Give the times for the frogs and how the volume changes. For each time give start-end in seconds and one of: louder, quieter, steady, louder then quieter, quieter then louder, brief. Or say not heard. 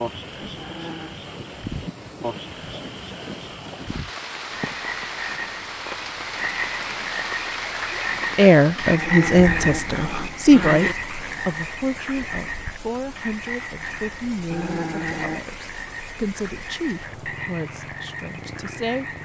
0.0-19.2 louder then quieter.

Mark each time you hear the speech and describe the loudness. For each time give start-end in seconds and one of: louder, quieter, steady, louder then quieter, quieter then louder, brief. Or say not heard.
8.3-19.1 quieter.